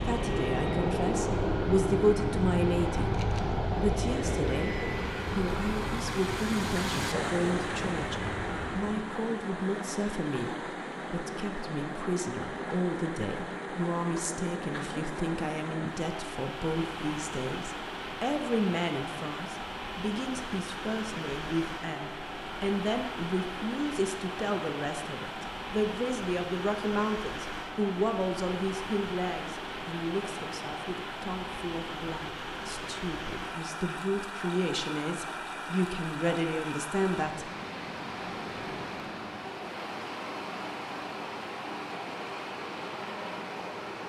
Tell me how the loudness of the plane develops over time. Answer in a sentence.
The volume of the plane goes down.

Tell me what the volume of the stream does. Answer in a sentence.
The loudness of the stream stays about the same.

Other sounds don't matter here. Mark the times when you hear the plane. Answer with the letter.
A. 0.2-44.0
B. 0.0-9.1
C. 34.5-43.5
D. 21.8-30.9
B.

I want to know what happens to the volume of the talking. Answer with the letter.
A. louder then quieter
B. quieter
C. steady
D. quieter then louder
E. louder
C.